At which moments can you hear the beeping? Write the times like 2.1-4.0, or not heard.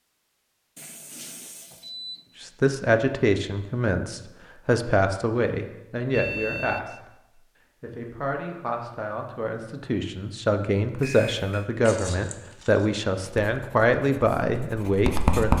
0.8-2.2, 6.1-7.0, 10.9-11.7.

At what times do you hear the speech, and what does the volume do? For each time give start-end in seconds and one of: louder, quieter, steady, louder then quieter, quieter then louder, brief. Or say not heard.
2.4-15.5 quieter then louder.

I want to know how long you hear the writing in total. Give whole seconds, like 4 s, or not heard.
2 s.